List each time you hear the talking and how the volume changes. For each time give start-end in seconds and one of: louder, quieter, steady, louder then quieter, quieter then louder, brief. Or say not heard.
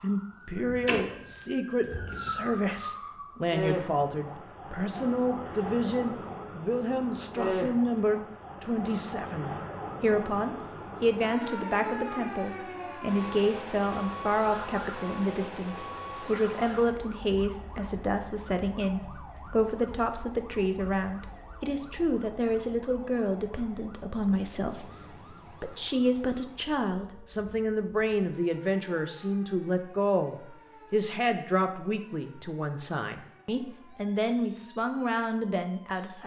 0.0-36.2 steady.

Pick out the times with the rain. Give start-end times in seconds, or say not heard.
not heard.